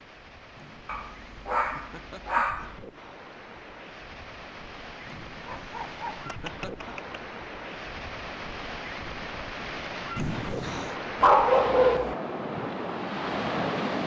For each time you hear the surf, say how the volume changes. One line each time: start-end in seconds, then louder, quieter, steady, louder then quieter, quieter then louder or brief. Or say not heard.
0.0-14.0 louder.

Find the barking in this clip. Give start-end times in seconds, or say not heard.
0.8-2.8, 5.5-7.2, 11.2-12.2.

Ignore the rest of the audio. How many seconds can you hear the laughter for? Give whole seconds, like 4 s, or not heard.
5 s.